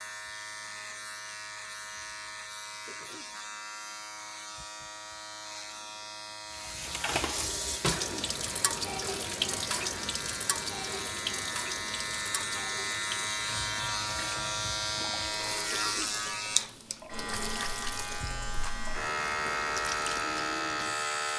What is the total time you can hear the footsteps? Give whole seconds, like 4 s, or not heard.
not heard.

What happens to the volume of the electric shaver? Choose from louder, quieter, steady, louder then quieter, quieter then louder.
louder.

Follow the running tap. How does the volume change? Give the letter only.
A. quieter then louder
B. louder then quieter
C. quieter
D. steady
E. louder
C.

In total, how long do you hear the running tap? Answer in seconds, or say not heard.
15 s.